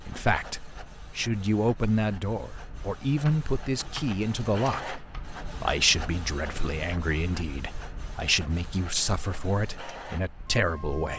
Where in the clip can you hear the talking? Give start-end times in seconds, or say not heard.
0.0-11.1.